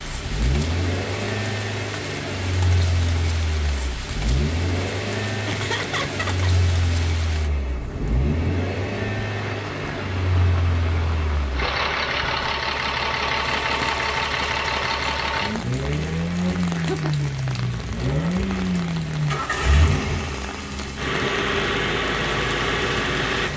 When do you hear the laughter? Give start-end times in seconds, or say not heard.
5.5-6.5, 16.7-17.3.